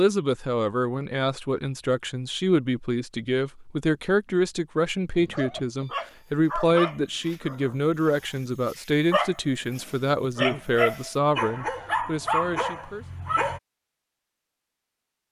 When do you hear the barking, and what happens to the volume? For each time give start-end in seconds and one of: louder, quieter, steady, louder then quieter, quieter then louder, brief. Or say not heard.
5.2-13.6 quieter then louder.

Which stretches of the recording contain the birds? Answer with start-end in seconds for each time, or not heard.
not heard.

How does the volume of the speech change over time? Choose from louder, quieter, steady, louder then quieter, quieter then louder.
steady.